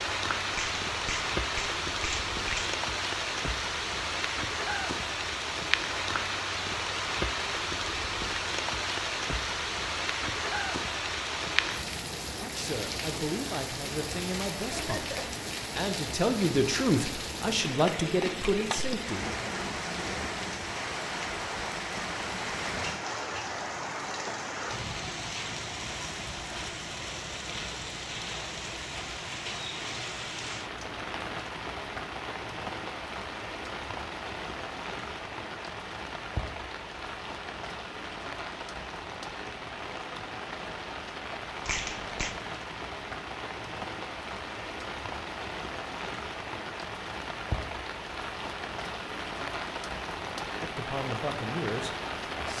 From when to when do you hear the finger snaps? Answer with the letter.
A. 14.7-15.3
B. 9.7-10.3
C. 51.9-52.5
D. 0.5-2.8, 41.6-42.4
D.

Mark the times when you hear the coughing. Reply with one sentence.
The coughing can be heard from 14.7 to 15.3 s.